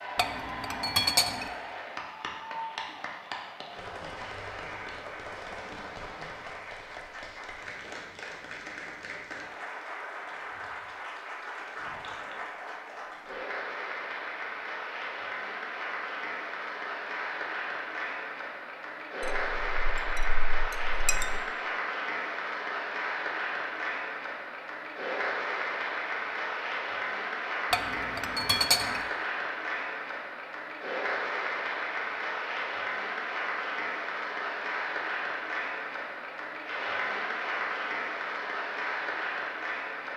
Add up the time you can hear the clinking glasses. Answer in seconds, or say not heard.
5 s.